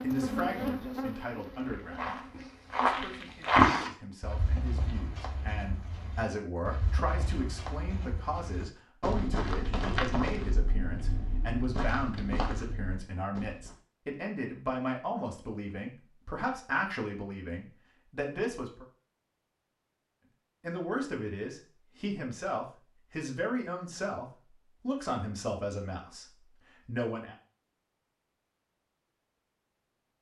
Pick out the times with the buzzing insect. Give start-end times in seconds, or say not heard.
0.0-3.4.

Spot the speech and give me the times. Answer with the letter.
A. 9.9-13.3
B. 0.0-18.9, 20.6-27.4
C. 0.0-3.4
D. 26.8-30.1
B.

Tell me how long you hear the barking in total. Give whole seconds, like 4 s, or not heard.
not heard.